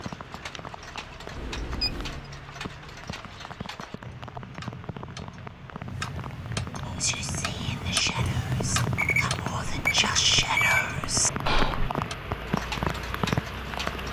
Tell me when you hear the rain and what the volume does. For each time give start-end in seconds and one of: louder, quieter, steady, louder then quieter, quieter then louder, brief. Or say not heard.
0.0-14.0 louder.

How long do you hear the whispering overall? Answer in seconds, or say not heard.
5 s.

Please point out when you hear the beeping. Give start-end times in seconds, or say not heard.
1.4-2.2, 8.9-10.8.